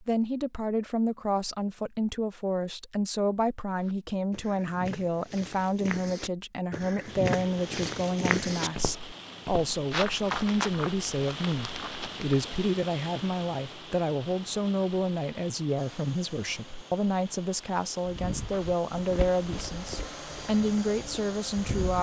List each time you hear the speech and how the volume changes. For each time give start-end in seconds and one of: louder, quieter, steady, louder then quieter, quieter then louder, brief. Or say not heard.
0.0-21.9 steady.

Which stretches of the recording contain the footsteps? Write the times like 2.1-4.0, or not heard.
3.7-12.3, 18.1-21.9.